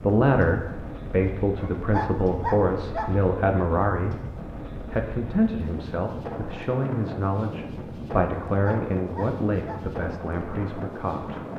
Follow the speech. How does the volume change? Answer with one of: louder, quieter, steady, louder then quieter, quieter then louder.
quieter.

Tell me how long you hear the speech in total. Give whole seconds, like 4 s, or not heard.
11 s.